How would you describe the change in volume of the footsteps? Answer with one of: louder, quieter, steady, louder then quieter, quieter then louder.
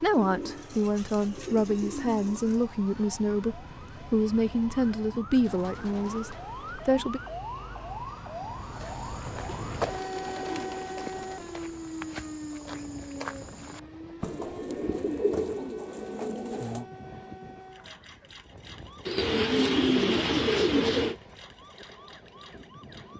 quieter then louder.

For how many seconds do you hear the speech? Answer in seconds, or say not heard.
7 s.